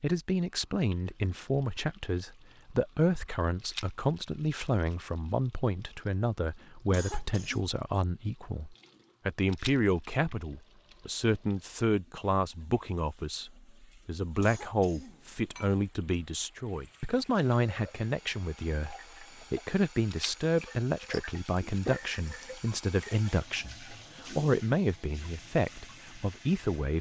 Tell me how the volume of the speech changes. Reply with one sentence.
The loudness of the speech stays about the same.